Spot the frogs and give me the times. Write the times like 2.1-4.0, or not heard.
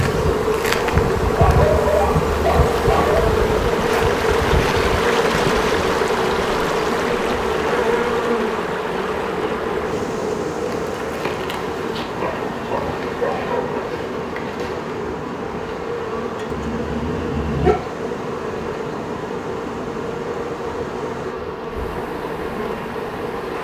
not heard.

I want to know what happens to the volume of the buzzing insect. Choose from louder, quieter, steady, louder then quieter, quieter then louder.
quieter.